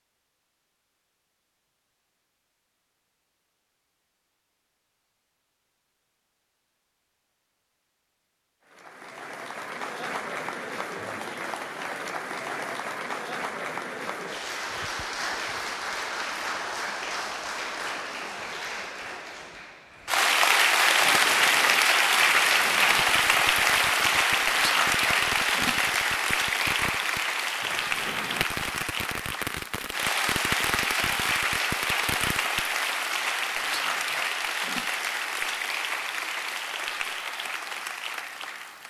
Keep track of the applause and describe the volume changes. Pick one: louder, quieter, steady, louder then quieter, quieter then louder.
louder then quieter.